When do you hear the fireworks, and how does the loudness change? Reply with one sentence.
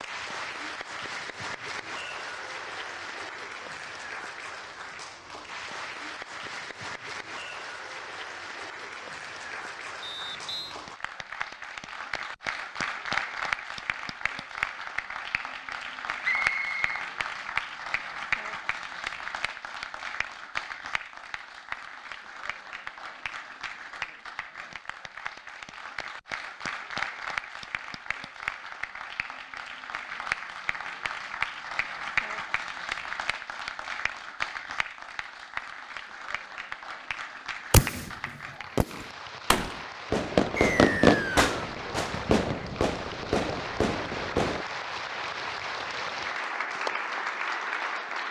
You can hear the fireworks from 37.7 to 44.6 s, getting louder then quieter.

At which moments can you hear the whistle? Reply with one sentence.
The whistle can be heard from 10.0 to 10.8 s, from 16.2 to 17.1 s and from 40.5 to 41.5 s.